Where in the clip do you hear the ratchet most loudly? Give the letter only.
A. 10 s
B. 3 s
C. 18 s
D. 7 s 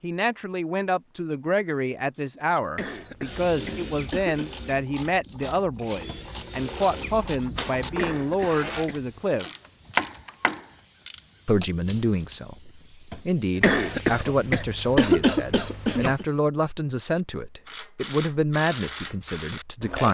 A.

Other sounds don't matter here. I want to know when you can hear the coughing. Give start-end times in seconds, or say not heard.
2.8-4.5, 8.0-9.2, 13.6-16.2.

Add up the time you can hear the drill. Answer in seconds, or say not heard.
6 s.